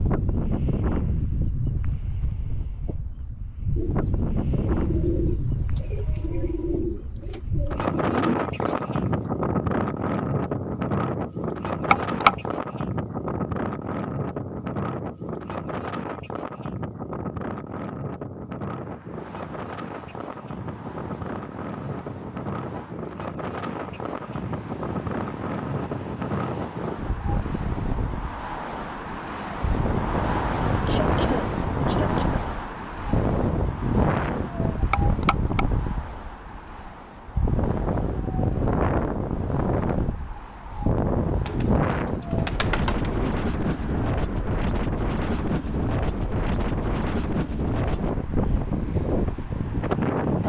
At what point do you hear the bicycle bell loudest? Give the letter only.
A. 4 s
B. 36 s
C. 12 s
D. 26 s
C.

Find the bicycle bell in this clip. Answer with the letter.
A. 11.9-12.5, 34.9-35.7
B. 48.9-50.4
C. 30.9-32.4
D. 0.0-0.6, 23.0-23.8
A.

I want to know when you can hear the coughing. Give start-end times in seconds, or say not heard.
30.9-32.4.